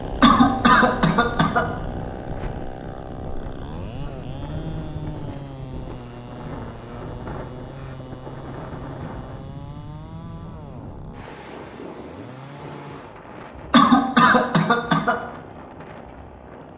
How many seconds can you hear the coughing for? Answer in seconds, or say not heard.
3 s.